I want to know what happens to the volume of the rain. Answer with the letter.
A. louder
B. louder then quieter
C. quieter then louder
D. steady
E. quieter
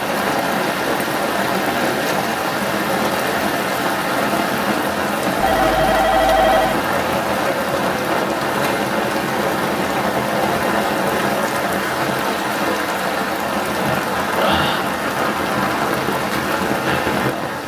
D.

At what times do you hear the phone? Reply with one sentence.
You can hear the phone from 5.4 to 6.8 s.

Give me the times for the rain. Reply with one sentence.
You can hear the rain from 0.0 to 17.6 s.